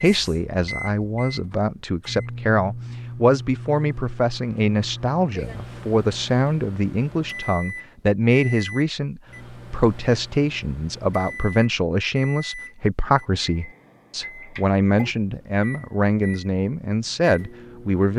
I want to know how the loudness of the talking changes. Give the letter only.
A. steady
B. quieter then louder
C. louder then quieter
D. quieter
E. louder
A.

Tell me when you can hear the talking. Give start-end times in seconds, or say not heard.
0.0-18.1.